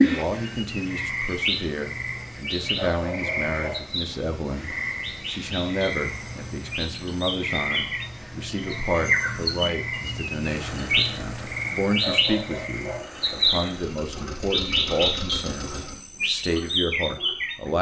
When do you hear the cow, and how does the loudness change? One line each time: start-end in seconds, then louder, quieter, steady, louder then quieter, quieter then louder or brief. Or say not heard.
not heard.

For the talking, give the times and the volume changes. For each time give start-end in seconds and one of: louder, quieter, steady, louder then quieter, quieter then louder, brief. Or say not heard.
0.0-17.7 steady.